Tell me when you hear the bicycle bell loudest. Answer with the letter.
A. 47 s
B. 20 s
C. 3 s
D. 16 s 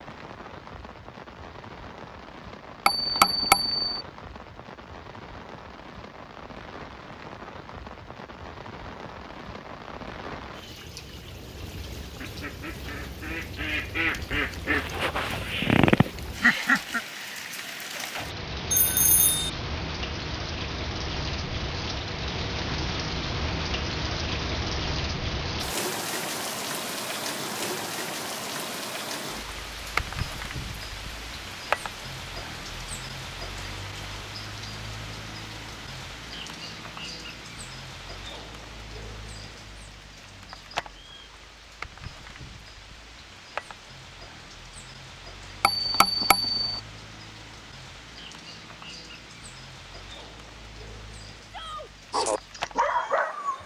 C.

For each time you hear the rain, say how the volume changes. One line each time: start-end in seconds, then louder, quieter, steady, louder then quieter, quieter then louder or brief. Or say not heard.
0.0-53.6 louder then quieter.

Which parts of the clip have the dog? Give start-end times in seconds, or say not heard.
52.1-53.6.